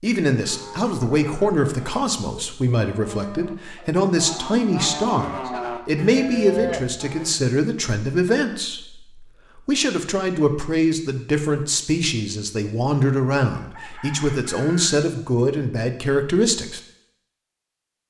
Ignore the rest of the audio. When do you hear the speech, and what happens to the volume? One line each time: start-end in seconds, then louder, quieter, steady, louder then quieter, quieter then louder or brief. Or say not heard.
0.0-16.8 steady.